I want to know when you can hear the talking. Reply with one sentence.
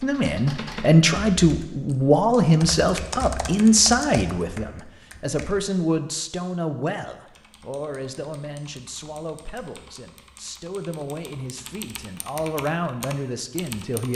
You can hear the talking from 0.0 to 14.1 s.